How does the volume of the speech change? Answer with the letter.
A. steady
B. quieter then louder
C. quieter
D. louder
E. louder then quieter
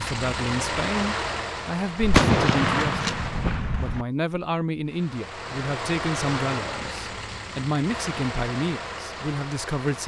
A.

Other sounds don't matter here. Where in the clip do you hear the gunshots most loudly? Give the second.
2 s.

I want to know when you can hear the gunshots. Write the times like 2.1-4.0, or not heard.
2.0-4.0.